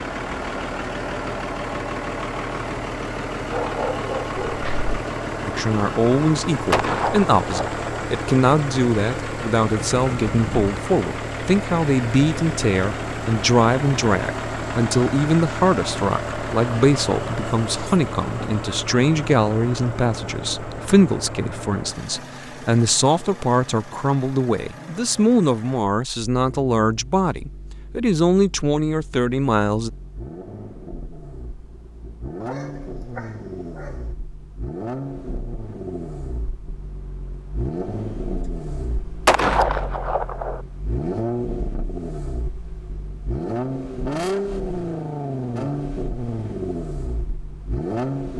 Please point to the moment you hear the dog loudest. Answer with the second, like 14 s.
4 s.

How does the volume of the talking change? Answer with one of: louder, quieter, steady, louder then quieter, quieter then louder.
steady.